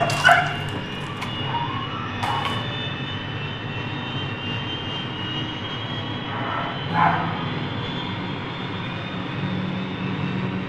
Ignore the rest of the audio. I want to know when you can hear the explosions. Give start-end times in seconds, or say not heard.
not heard.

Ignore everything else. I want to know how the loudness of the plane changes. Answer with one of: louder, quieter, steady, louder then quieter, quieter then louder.
steady.